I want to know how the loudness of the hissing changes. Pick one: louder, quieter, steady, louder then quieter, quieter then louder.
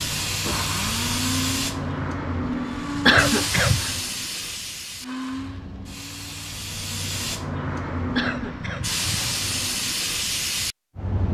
quieter then louder.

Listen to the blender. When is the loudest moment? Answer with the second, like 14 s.
1 s.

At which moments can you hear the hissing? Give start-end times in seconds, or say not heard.
0.0-11.2.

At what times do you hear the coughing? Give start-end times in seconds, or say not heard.
3.0-4.0, 8.2-9.3.